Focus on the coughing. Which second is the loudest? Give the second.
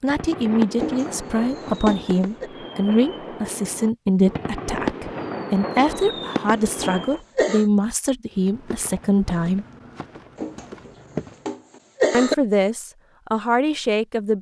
12 s.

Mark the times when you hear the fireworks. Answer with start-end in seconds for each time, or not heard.
0.1-7.2.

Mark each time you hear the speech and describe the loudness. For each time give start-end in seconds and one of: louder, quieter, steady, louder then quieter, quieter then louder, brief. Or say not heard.
0.0-9.7 steady
12.1-14.3 brief.